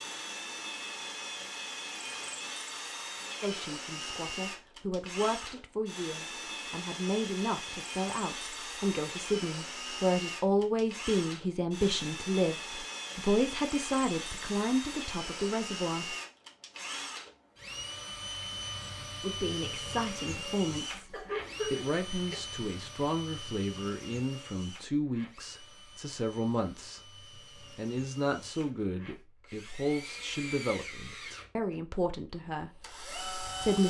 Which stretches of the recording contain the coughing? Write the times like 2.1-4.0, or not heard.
21.1-22.4.